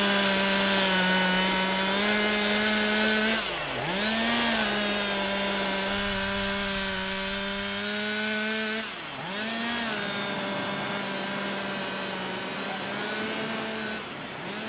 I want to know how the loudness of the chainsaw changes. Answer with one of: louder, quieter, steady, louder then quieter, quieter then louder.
quieter.